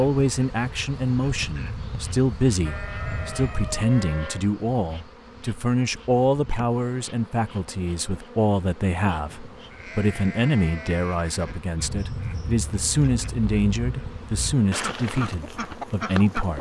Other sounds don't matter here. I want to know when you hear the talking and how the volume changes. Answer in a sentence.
You can hear the talking from 0.0 to 16.5 s, at a steady volume.